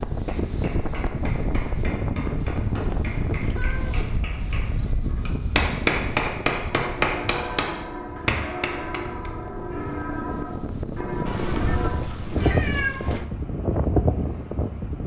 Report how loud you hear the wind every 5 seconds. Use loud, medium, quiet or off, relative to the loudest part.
loud, medium, loud.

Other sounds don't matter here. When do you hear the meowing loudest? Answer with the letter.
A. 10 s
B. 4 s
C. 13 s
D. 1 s
C.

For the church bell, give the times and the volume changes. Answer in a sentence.
You can hear the church bell from 6.8 to 12.0 s, at a steady volume.